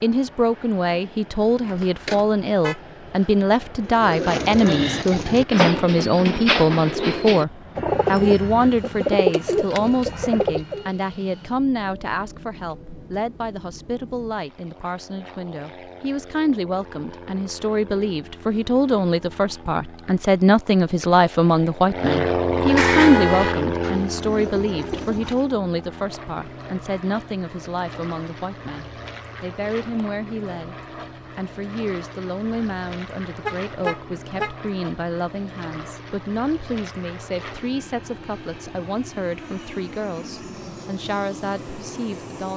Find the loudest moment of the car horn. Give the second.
23 s.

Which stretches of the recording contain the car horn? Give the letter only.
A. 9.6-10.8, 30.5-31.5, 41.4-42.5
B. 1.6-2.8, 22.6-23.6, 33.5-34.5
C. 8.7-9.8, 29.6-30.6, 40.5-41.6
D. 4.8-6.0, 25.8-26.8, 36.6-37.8
B.